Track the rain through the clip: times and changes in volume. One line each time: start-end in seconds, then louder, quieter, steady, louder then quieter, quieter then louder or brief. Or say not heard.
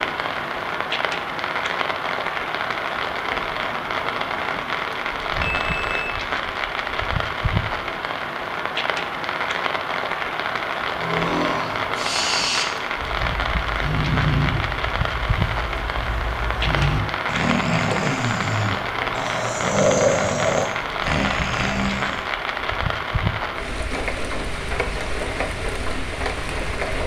0.0-27.0 steady.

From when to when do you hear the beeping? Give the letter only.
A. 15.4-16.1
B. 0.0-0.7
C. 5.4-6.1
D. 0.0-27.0
C.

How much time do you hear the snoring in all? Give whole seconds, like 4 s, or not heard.
11 s.